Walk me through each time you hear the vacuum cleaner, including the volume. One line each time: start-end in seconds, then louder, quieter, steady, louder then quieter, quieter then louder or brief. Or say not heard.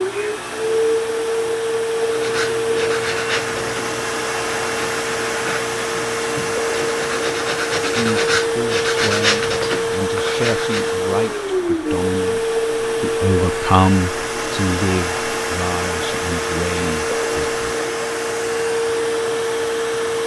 0.0-20.2 steady.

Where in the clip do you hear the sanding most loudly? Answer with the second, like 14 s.
9 s.